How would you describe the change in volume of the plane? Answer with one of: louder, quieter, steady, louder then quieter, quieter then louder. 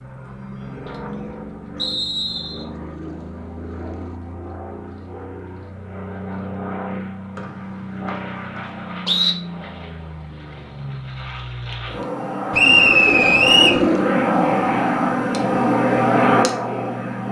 louder.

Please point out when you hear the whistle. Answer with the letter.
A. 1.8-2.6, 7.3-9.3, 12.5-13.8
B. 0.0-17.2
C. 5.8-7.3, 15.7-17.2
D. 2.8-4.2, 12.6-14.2
A.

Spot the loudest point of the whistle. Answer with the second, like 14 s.
13 s.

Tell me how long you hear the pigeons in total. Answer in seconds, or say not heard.
3 s.